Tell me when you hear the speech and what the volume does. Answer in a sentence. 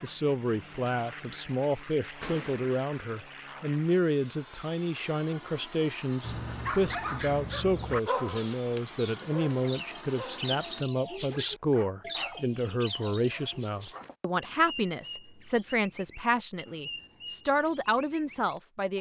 The speech can be heard from 0.0 to 18.9 s, at a steady volume.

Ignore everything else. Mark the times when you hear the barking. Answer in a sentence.
The barking can be heard from 6.2 to 10.5 s and from 11.3 to 14.2 s.